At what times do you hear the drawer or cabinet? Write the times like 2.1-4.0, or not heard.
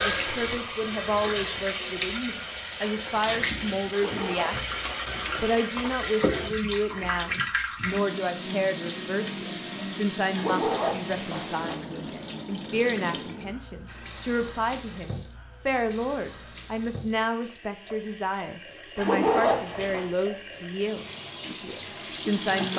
not heard.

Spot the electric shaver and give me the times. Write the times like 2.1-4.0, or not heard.
not heard.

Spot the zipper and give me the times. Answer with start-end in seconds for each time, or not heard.
3.9-5.6, 10.3-11.8, 18.9-20.1.